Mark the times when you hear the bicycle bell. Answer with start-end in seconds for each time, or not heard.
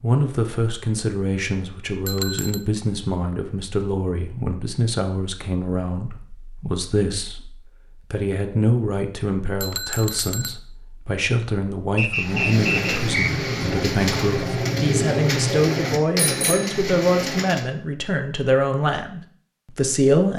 2.0-2.6, 9.6-10.6, 16.2-16.9.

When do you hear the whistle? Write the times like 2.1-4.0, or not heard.
11.9-13.4.